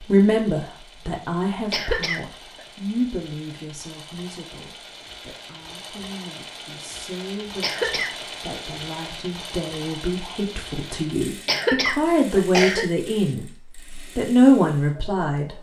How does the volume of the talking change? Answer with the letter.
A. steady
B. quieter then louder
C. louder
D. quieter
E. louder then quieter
B.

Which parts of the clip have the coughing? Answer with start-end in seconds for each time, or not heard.
1.7-2.6, 7.6-8.1, 11.4-12.8.